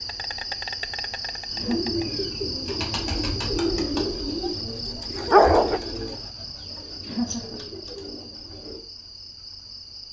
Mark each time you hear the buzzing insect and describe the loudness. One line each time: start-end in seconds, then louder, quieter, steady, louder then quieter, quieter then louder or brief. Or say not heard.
0.0-10.0 quieter.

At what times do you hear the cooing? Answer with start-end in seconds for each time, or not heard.
1.5-8.8.